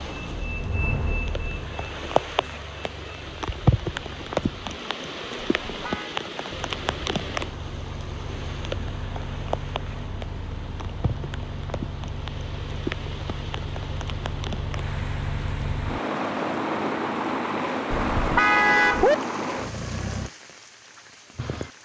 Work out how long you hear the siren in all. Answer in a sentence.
You can't hear the siren here.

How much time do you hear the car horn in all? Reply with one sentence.
The car horn can be heard for 2 seconds in total.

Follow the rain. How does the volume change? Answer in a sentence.
The loudness of the rain goes down.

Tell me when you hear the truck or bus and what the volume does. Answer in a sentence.
The truck or bus can be heard from 0.0 to 4.8 s, getting quieter; and from 6.5 to 20.3 s, getting louder.